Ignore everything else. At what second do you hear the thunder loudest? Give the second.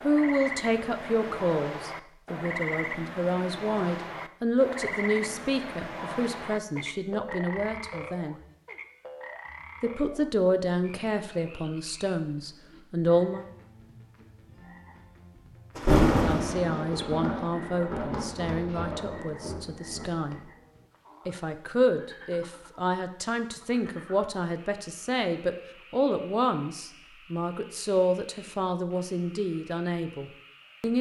16 s.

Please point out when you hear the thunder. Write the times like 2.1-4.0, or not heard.
15.8-20.4.